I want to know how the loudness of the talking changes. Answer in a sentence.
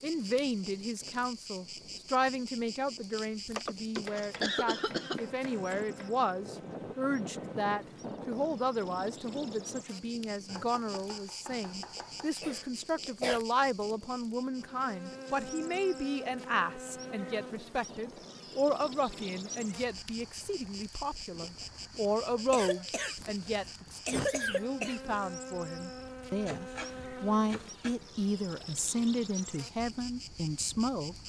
The loudness of the talking stays about the same.